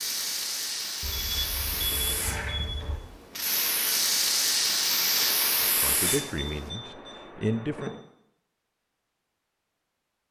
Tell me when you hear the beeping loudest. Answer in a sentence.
The loudest moment of the beeping is at 2 seconds.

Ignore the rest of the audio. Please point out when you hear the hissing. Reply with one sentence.
You can hear the hissing from 0.0 to 6.7 s.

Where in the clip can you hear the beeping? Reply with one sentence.
The beeping can be heard from 1.0 to 3.0 s and from 6.0 to 8.0 s.